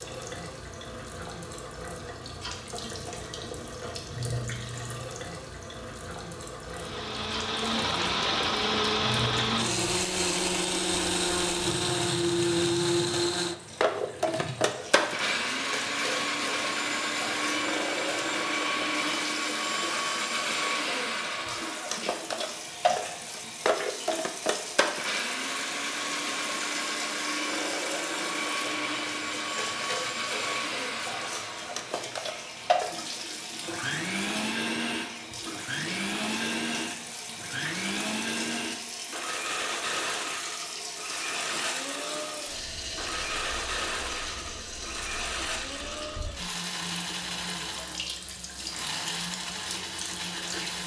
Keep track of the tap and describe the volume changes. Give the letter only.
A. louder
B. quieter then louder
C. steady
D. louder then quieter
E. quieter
C.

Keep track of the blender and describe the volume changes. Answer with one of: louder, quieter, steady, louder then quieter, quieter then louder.
quieter.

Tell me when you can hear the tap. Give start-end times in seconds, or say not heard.
0.0-50.8.